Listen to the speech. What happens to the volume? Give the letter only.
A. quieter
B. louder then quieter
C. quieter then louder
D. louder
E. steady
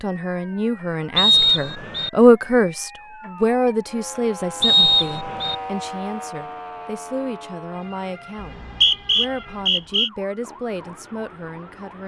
A.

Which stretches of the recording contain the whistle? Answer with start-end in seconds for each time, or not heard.
1.1-2.1, 4.6-5.5, 8.4-10.1.